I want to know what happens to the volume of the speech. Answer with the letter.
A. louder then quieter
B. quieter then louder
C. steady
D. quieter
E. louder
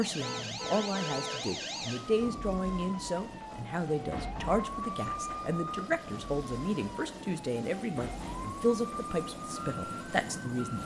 C.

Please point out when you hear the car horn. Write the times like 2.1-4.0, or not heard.
0.2-1.4.